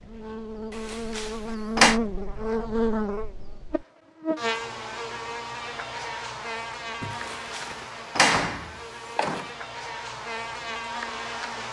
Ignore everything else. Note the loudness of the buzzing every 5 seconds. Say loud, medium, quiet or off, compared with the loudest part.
loud, medium, loud.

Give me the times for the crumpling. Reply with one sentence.
You can hear the crumpling from 7.0 to 8.0 s.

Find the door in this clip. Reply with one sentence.
You can hear the door from 0.8 to 2.0 s and from 7.1 to 9.5 s.